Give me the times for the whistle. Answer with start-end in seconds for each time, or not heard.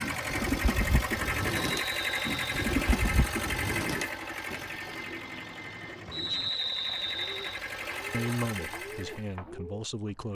1.6-2.5, 6.1-7.6.